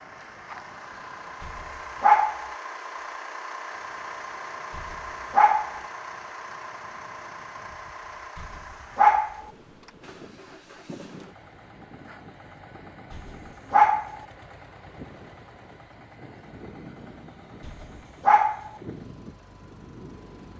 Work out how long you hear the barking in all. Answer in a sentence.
You can hear the barking for 5 seconds altogether.